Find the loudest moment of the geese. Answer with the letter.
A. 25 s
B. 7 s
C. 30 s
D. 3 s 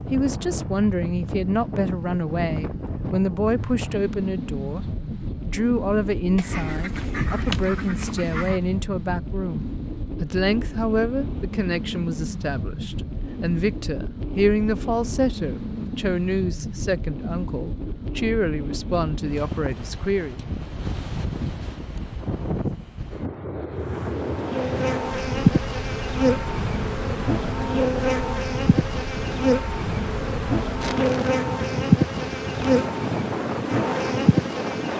B.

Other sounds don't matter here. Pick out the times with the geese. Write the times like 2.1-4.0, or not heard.
6.3-8.6.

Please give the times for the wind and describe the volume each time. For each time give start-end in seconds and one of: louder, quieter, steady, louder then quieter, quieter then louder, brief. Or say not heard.
0.0-34.9 steady.